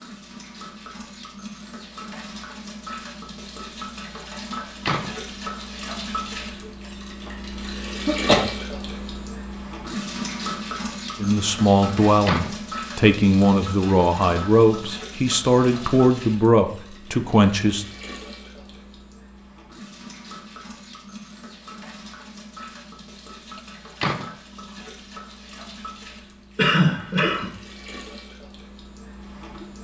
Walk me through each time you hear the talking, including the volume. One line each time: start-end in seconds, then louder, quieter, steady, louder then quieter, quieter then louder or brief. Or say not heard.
11.2-17.9 steady.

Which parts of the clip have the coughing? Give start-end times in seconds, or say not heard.
7.2-8.4, 26.6-27.5.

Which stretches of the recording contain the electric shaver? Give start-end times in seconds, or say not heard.
not heard.